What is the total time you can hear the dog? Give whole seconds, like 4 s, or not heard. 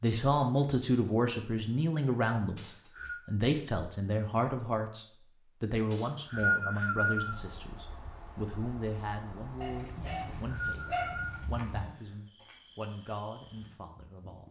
2 s.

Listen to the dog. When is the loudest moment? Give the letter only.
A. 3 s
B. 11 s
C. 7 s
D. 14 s
B.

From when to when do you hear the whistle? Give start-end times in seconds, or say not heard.
2.5-3.1, 5.9-7.3, 10.1-11.4.